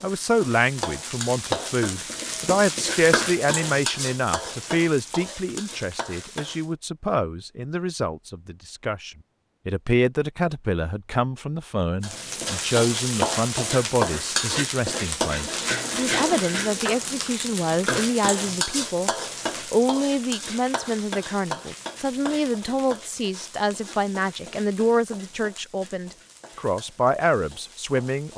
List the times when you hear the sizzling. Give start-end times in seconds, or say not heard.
0.0-6.7, 12.0-28.3.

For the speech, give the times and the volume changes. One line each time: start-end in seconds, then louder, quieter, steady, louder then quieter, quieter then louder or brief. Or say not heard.
0.0-28.3 steady.